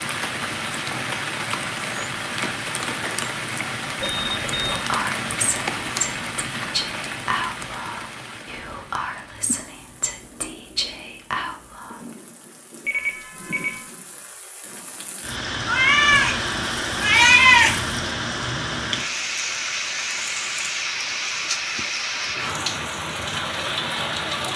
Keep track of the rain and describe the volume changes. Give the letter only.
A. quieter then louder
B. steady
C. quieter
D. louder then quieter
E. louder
A.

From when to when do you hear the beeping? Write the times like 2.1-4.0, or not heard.
4.0-4.7, 12.8-13.8.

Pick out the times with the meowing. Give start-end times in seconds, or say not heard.
15.7-17.9.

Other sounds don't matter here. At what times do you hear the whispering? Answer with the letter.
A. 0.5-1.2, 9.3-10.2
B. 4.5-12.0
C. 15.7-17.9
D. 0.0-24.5
B.